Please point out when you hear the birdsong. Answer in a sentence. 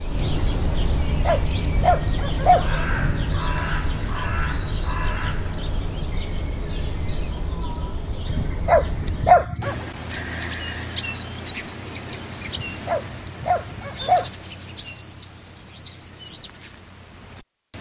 The birdsong can be heard from 0.0 to 17.7 s.